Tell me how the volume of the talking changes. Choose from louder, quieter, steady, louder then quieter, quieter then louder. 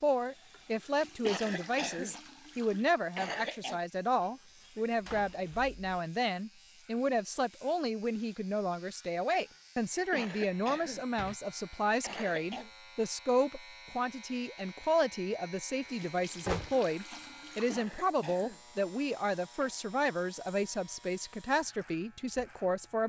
steady.